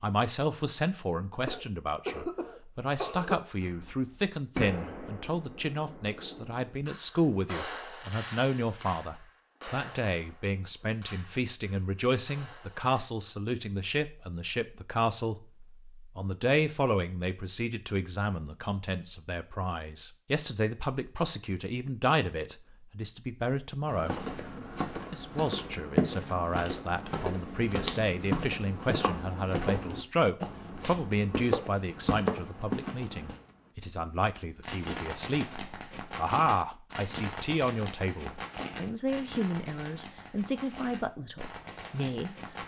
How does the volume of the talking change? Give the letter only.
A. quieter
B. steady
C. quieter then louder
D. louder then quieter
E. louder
B.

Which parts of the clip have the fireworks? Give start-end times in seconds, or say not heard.
3.6-13.1, 34.6-42.6.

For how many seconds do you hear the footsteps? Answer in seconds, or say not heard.
10 s.